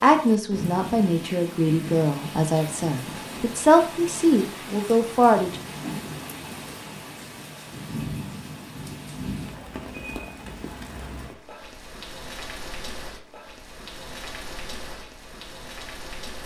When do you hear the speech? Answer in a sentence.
The speech can be heard from 0.0 to 5.5 s.